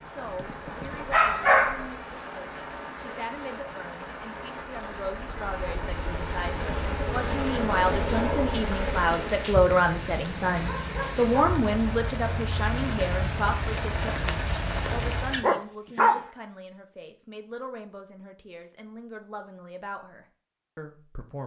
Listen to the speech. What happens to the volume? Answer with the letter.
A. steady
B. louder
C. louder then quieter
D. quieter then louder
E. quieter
C.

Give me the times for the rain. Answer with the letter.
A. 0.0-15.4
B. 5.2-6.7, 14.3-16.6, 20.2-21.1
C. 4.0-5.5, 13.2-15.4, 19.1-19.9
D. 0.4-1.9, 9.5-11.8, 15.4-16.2
A.